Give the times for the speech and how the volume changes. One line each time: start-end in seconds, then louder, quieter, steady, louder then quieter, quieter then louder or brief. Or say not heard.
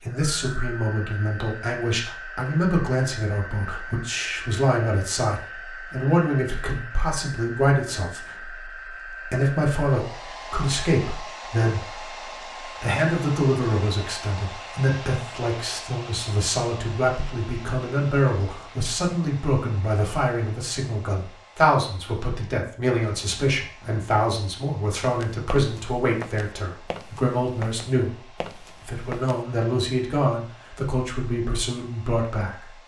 0.0-32.8 steady.